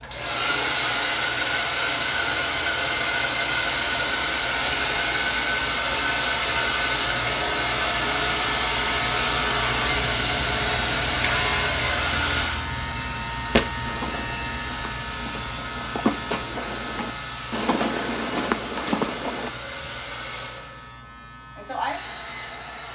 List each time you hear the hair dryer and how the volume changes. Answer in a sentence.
You can hear the hair dryer from 0.0 to 22.9 s, getting quieter.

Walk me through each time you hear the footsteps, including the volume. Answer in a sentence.
The footsteps can be heard from 13.6 to 19.5 s, getting louder.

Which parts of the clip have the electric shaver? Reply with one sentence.
You can hear the electric shaver from 0.0 to 22.9 s.